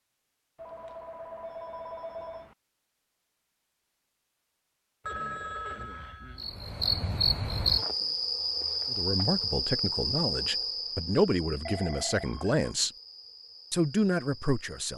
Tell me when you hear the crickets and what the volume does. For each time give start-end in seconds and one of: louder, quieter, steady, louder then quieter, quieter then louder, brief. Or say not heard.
6.3-14.8 quieter.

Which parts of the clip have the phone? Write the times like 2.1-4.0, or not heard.
0.6-2.5, 5.0-6.5, 11.7-12.7.